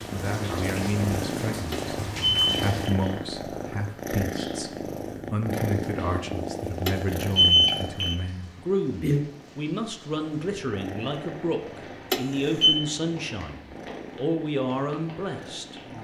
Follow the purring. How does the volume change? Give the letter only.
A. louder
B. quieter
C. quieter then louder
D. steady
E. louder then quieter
B.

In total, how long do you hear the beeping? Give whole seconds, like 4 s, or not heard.
3 s.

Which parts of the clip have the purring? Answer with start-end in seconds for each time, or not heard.
0.0-15.9.